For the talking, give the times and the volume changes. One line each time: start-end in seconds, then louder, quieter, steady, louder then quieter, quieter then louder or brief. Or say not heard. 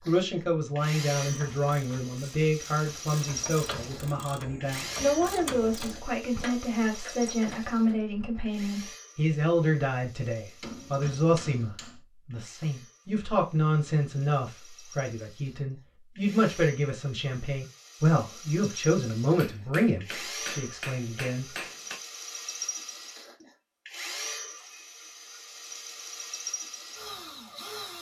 0.1-21.4 steady.